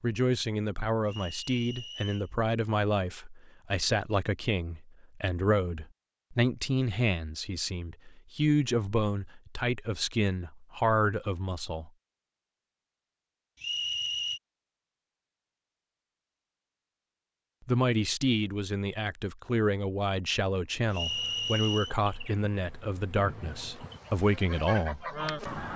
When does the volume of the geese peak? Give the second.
25 s.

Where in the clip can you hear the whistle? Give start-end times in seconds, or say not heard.
1.1-2.3, 13.6-14.4, 20.9-21.9.